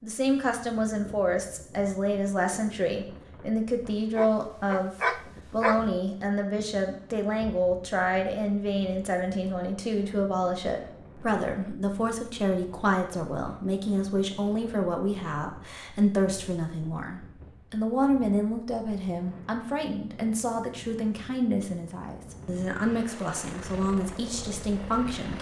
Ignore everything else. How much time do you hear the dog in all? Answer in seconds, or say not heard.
2 s.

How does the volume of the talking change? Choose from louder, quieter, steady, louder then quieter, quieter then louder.
steady.